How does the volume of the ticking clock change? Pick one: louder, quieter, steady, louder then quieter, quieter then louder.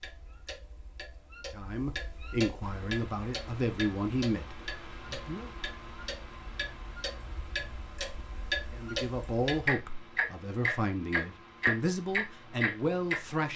louder.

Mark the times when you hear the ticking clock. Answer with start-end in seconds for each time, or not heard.
0.0-13.5.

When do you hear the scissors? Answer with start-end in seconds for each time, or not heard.
not heard.